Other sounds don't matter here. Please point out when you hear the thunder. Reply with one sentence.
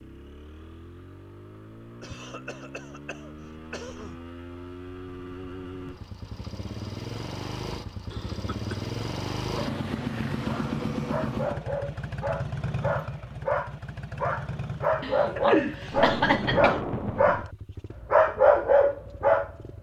You can hear the thunder from 15.9 to 17.4 s.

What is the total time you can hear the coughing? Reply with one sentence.
The coughing can be heard for 5 seconds in total.